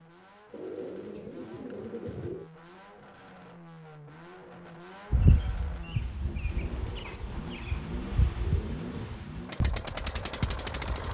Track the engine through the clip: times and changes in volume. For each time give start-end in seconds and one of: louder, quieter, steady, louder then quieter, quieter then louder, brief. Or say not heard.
0.0-11.0 louder.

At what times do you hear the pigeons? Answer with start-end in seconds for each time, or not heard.
0.5-2.5, 6.7-9.2.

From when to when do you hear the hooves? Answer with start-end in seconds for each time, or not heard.
5.1-11.0.